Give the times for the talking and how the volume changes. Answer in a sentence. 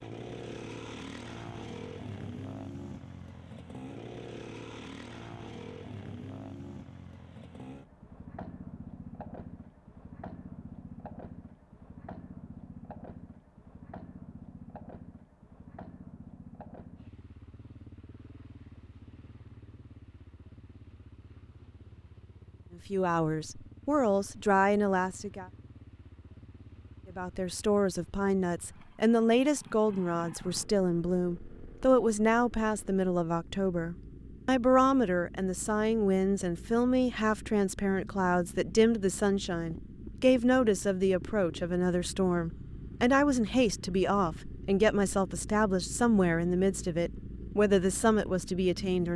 The talking can be heard briefly from 22.8 to 25.4 s; and from 27.1 to 49.1 s, at a steady volume.